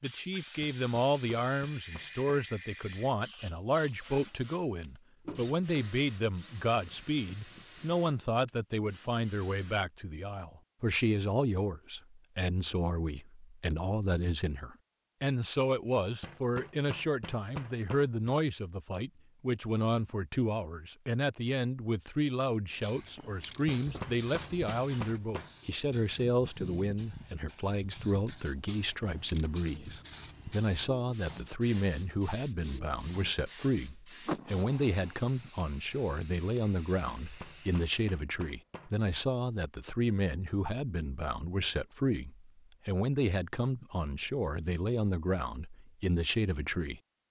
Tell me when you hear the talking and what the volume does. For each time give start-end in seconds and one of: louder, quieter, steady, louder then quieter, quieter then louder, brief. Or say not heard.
0.0-47.0 steady.